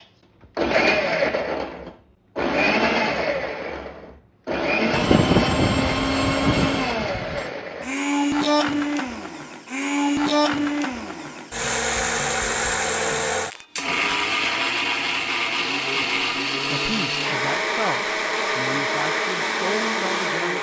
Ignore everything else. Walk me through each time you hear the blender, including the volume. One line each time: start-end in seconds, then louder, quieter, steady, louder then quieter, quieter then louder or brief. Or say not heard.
0.6-20.5 steady.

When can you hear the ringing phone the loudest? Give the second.
5 s.